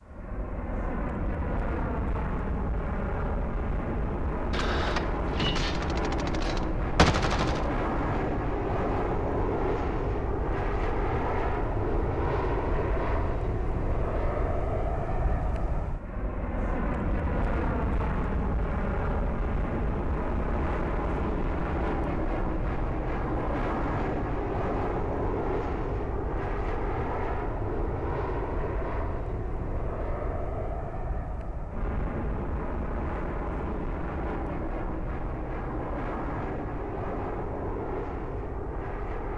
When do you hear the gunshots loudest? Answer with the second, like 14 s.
7 s.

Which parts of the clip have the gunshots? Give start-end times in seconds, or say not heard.
4.5-7.7.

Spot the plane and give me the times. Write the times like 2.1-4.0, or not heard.
0.0-39.3.